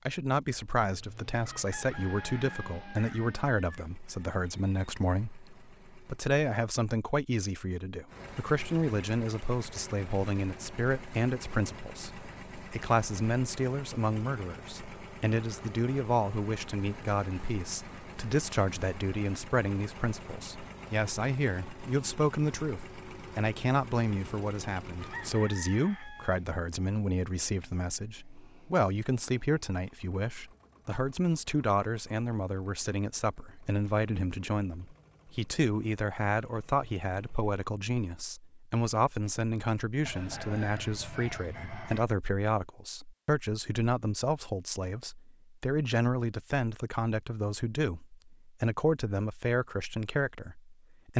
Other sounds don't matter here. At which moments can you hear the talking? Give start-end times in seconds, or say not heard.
0.1-51.1.